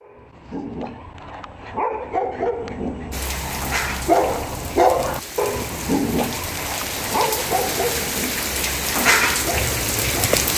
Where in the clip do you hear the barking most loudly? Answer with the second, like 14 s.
5 s.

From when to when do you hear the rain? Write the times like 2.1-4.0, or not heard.
3.1-10.5.